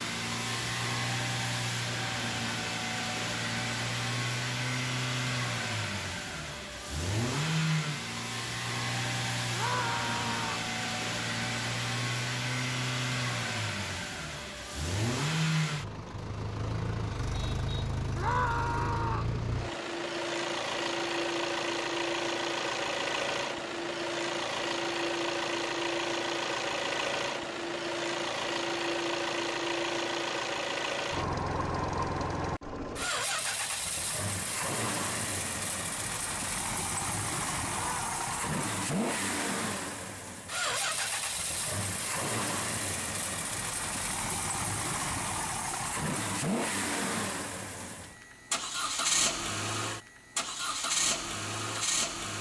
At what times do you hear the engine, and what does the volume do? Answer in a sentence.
You can hear the engine from 0.0 to 52.3 s, at a steady volume.